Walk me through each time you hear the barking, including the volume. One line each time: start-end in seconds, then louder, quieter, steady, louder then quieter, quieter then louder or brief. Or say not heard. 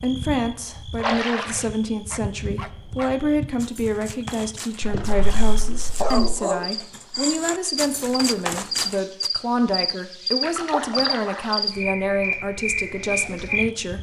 2.1-9.3 louder.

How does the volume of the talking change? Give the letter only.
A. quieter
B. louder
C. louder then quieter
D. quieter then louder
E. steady
E.